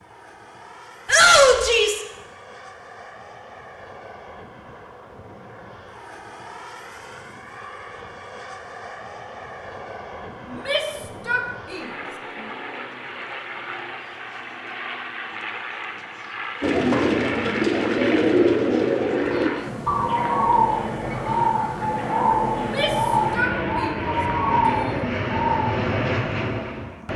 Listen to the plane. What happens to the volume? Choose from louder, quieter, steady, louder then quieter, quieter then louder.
louder.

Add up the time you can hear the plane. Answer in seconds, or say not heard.
27 s.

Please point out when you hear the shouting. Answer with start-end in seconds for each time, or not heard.
1.1-2.0, 10.5-11.8, 22.6-23.9, 24.6-25.1.